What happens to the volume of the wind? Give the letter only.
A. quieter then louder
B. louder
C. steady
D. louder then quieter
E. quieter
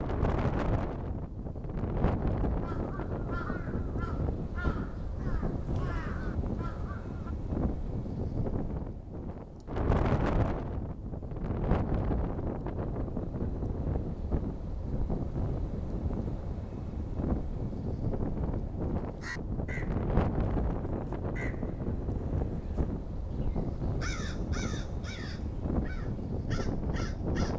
C.